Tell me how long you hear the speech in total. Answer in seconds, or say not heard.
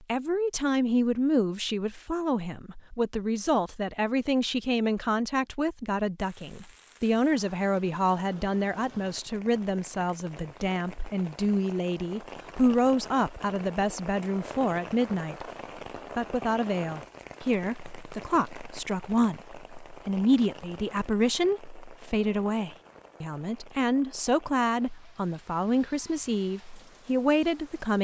27 s.